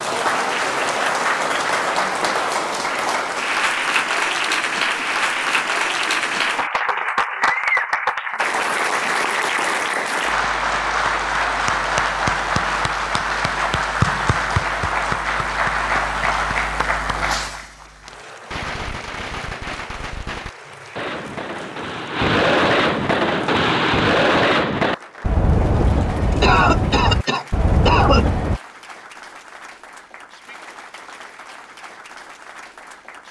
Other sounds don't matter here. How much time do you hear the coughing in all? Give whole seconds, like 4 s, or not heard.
2 s.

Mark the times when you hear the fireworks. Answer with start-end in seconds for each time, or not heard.
17.1-28.6.